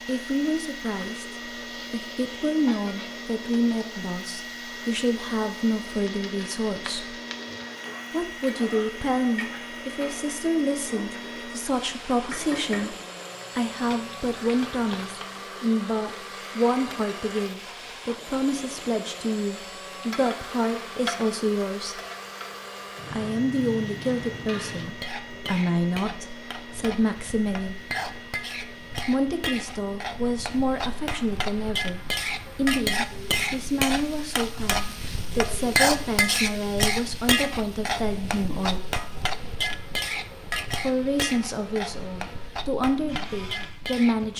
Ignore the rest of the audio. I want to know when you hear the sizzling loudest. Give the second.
36 s.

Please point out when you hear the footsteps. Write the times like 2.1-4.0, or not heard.
not heard.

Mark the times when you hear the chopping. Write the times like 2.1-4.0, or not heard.
not heard.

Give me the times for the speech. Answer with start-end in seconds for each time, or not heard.
0.1-7.2, 8.1-12.9, 13.6-22.0, 23.1-27.8, 28.9-39.0, 40.8-44.3.